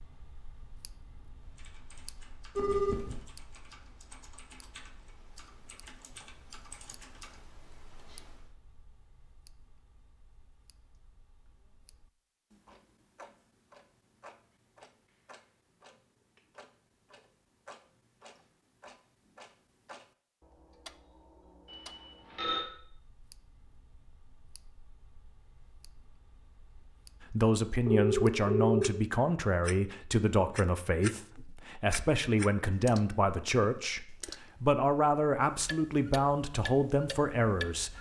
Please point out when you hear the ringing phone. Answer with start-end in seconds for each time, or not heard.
2.5-3.2, 21.7-22.6, 27.9-28.9.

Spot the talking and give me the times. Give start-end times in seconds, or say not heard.
27.3-37.9.